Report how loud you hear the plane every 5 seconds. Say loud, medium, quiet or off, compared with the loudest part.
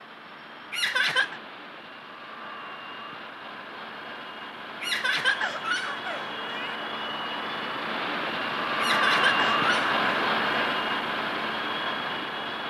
quiet, loud, loud.